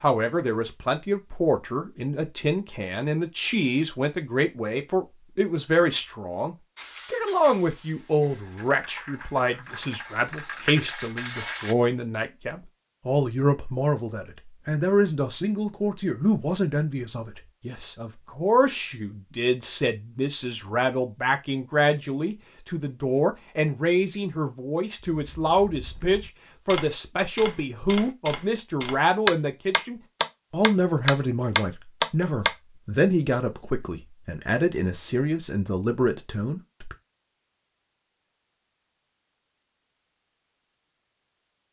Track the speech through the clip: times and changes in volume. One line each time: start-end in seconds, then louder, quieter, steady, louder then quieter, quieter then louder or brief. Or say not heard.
0.0-37.0 steady.